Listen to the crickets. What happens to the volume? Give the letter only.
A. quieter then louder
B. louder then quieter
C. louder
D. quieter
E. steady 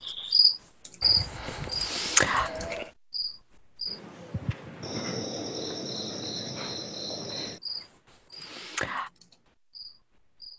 D.